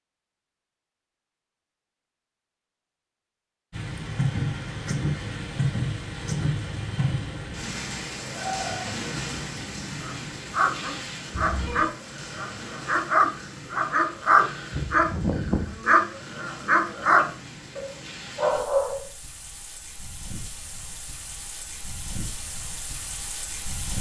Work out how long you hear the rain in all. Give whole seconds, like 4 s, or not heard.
20 s.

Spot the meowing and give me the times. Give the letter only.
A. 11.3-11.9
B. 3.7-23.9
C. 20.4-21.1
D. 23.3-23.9
A.